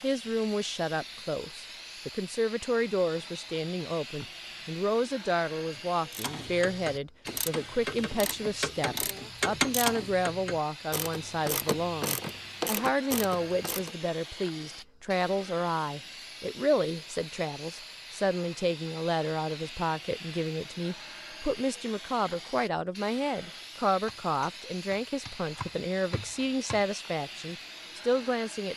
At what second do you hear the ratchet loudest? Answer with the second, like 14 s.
10 s.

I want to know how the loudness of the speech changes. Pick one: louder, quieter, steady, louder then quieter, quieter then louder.
steady.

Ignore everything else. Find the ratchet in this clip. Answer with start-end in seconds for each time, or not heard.
6.1-13.9.